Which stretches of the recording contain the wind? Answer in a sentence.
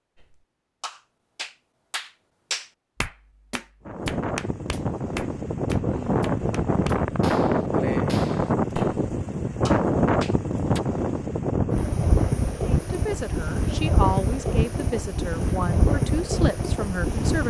You can hear the wind from 3.9 to 17.4 s.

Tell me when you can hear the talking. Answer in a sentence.
You can hear the talking from 12.8 to 17.4 s.